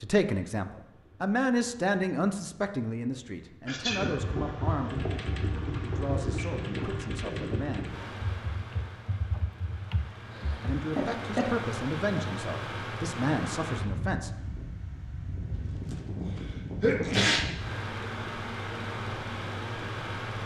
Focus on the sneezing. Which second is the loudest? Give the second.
17 s.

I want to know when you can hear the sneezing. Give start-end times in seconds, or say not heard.
3.6-4.2, 10.3-11.5, 15.6-17.4.